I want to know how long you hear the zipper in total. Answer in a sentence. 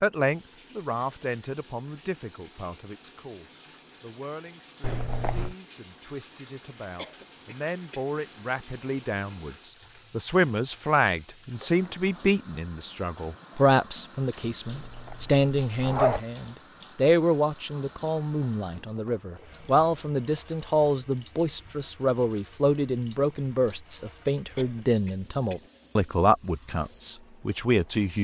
The zipper can be heard for 2 seconds in total.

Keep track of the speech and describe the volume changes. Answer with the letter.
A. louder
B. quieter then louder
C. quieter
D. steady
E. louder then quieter
A.